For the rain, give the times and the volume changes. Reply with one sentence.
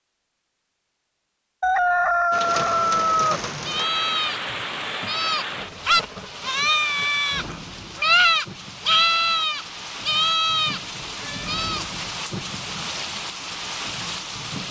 You can hear the rain from 2.3 to 14.6 s, getting quieter then louder.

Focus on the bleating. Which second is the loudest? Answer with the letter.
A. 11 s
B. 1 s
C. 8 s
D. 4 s
C.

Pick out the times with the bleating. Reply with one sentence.
You can hear the bleating from 3.6 to 11.8 s.